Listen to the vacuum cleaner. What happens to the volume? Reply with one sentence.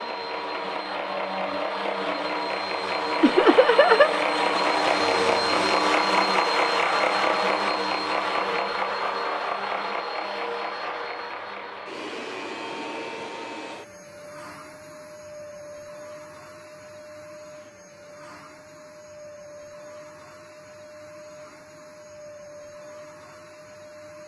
The loudness of the vacuum cleaner goes down.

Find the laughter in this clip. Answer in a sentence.
The laughter can be heard from 3.2 to 4.1 s.